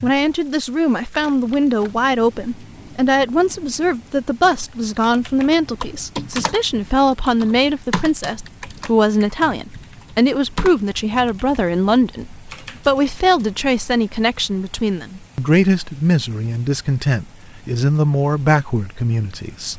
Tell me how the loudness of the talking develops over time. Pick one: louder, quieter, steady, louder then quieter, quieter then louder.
steady.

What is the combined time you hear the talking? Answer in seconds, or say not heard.
20 s.